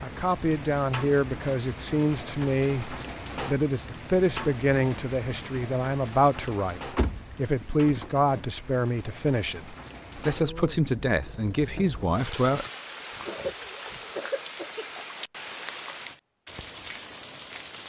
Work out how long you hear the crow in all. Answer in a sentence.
You can't hear the crow here.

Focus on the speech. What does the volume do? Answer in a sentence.
The volume of the speech stays about the same.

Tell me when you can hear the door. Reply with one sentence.
The door can be heard from 7.0 to 8.4 s.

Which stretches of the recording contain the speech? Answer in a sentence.
You can hear the speech from 0.0 to 12.7 s.